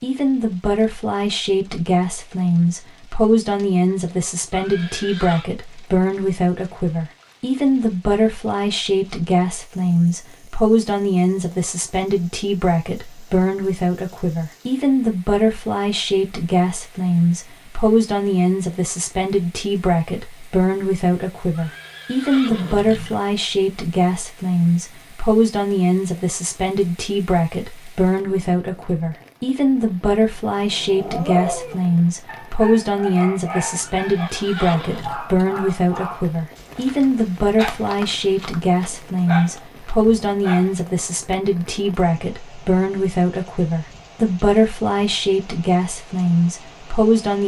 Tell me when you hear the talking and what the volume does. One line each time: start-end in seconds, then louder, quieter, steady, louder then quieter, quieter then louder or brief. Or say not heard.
0.0-47.4 steady.